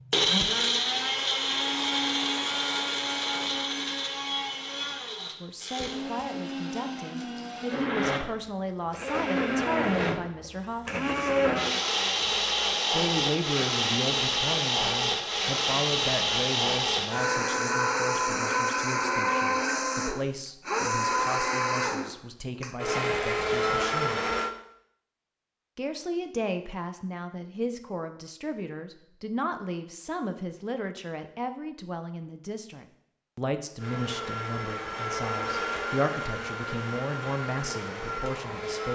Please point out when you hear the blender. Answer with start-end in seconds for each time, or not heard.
0.0-24.5, 33.8-38.8.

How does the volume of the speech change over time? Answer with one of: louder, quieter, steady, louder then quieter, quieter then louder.
steady.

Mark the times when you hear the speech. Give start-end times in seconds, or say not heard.
5.3-11.1, 12.9-24.2, 25.8-38.8.